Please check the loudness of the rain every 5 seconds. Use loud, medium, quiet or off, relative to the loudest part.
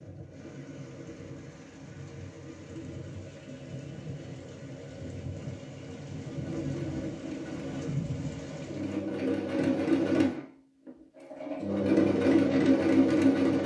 medium, loud, off.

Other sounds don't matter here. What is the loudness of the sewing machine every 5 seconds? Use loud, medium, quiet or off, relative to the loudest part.
off, medium, loud.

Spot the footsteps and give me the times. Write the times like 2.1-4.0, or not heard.
not heard.